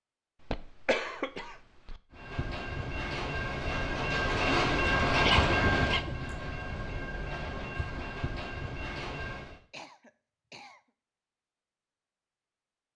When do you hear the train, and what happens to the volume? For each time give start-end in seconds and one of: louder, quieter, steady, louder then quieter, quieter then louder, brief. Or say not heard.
2.1-9.6 louder then quieter.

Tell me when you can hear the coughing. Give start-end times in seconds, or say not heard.
0.4-2.0, 5.2-6.2, 9.7-10.8.